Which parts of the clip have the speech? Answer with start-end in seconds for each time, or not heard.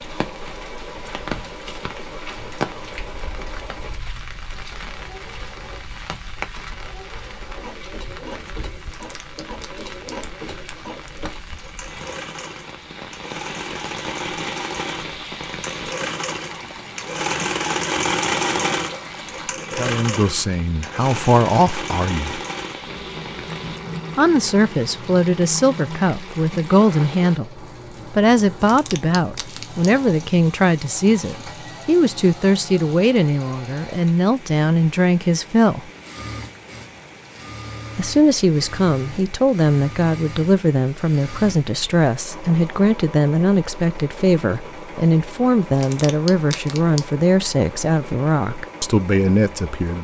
19.8-22.4, 24.1-35.9, 38.0-50.0.